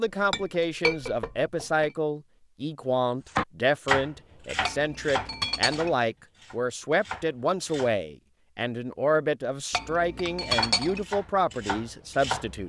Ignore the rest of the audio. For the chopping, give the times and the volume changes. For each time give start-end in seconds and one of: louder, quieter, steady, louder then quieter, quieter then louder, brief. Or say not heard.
3.4-8.0 quieter then louder
10.4-12.6 brief.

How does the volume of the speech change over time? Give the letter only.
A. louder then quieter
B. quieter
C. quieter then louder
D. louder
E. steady
E.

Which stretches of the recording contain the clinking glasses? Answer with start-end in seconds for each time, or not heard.
0.1-1.9, 4.7-6.0, 9.7-11.1.